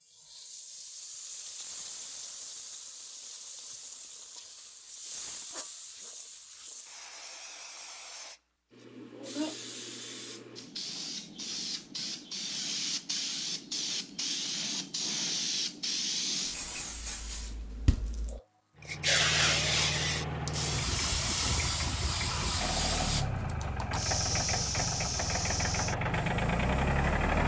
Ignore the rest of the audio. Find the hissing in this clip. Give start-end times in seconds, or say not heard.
0.0-27.4.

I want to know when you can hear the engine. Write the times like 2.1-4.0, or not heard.
18.8-27.4.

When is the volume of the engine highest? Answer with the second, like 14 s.
27 s.